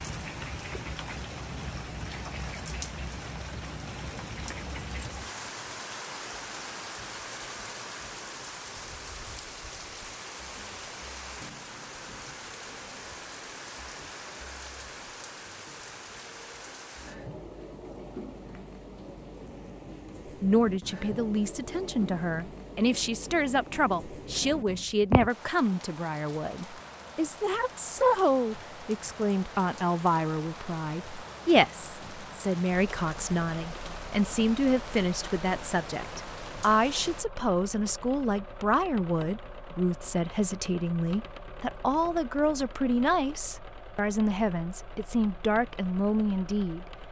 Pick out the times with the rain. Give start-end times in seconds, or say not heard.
0.0-37.2.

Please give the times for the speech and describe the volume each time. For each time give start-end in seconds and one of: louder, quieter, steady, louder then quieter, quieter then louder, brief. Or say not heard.
20.4-46.9 steady.